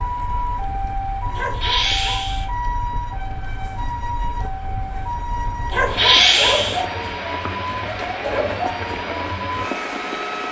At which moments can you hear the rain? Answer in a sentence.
The rain can be heard from 0.0 to 10.4 s.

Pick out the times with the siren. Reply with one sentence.
The siren can be heard from 0.0 to 10.4 s.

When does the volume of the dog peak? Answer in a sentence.
The volume of the dog peaks at 6 seconds.